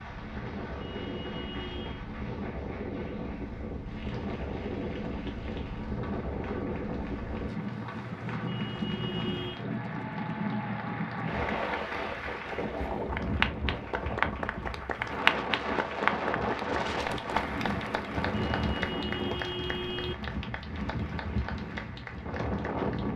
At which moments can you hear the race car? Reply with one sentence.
You can't hear the race car here.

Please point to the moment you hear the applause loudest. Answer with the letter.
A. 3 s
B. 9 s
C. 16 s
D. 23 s
C.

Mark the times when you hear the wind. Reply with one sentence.
The wind can be heard from 0.0 to 23.1 s.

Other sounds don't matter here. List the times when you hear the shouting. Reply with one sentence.
You can't hear the shouting here.